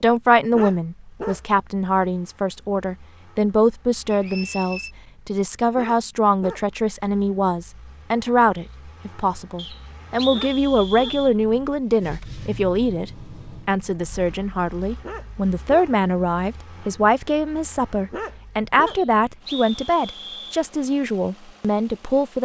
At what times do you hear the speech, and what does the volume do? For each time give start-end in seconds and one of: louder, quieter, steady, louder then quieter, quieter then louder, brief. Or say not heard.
0.0-22.3 steady.